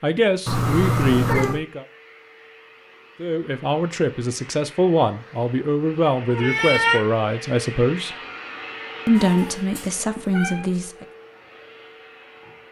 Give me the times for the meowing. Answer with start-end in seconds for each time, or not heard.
0.5-1.6, 6.2-7.0, 9.2-10.7.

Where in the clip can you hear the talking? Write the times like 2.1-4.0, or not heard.
0.0-1.9, 3.2-8.2, 9.1-11.1.